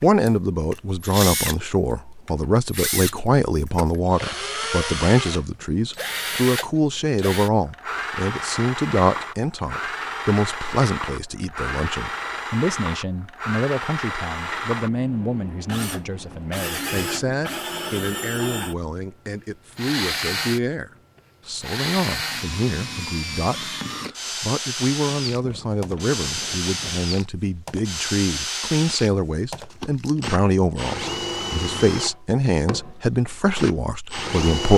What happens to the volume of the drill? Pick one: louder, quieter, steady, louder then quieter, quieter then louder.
steady.